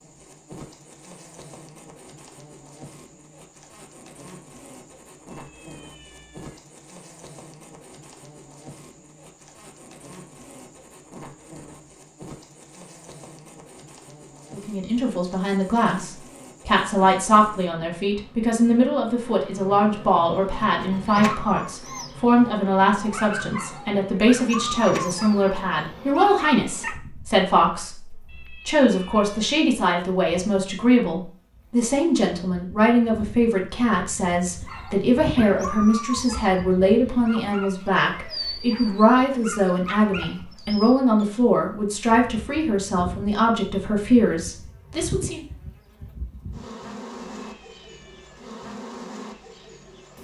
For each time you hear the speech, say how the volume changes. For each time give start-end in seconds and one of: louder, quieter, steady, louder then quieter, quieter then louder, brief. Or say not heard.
14.5-45.5 steady.